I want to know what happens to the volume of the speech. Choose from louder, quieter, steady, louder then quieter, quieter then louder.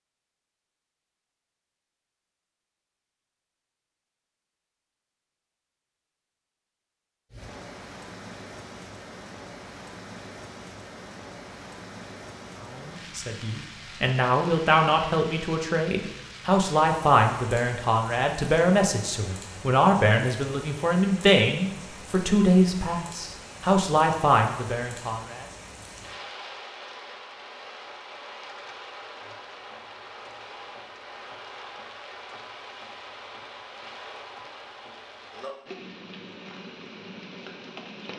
steady.